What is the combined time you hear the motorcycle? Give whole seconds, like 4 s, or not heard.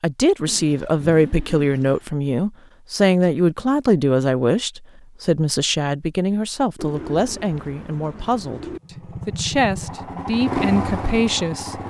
3 s.